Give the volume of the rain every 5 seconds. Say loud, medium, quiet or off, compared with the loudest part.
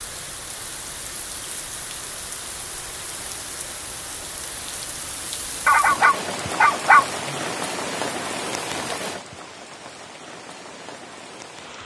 medium, loud, medium.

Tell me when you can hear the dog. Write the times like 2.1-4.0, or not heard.
5.7-7.3.